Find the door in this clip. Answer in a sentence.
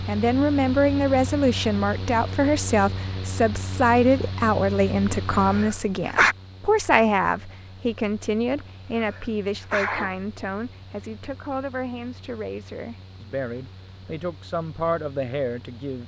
You can't hear the door here.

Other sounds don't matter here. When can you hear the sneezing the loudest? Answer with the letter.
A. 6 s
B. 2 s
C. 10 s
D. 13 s
A.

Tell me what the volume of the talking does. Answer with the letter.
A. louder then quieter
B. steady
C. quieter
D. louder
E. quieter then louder
C.